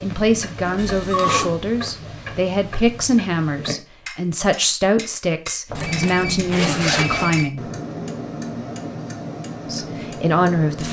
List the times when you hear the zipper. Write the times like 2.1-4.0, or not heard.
0.7-1.6, 5.8-7.5.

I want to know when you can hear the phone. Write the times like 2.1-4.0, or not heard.
0.8-1.4, 5.7-7.5.